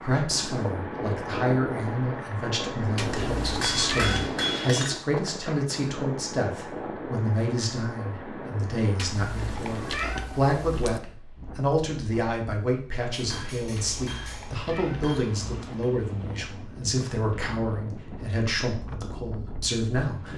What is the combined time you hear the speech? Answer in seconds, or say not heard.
20 s.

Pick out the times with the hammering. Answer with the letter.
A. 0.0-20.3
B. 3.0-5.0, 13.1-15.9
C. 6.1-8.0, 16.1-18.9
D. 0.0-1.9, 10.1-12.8
B.